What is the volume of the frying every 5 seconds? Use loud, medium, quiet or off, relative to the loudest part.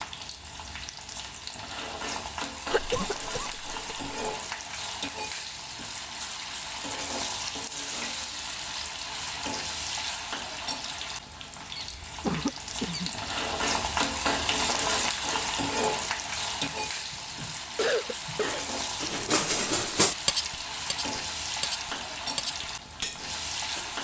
medium, loud, loud, loud, loud.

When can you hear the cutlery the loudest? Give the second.
20 s.